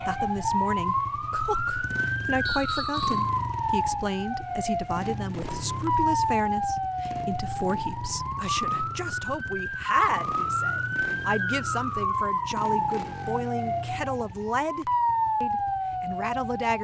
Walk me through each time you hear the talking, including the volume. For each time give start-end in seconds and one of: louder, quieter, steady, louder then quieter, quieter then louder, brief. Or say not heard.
0.1-16.7 steady.